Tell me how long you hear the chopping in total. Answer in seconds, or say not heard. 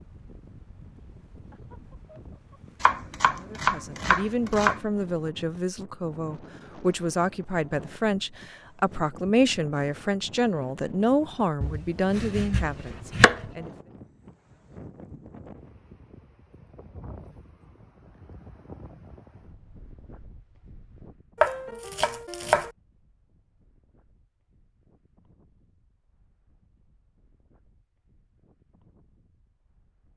5 s.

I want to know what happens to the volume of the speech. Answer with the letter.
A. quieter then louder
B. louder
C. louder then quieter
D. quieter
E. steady
E.